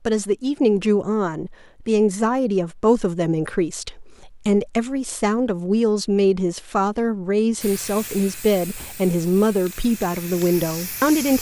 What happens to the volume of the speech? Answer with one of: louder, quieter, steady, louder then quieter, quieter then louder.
steady.